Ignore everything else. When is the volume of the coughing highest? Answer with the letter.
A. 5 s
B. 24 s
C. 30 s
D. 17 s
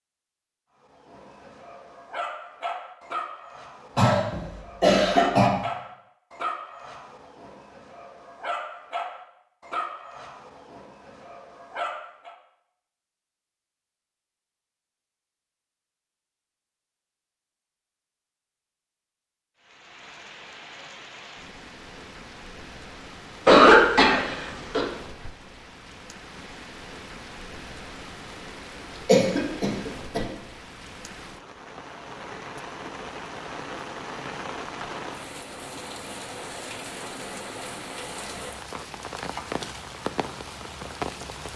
B.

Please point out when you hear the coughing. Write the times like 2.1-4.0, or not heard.
4.0-5.5, 23.4-24.9, 29.1-30.2.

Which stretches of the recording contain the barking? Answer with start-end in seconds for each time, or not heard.
0.9-12.3.